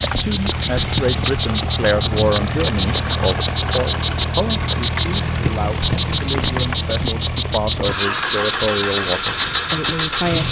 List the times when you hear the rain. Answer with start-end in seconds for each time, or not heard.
0.0-10.3.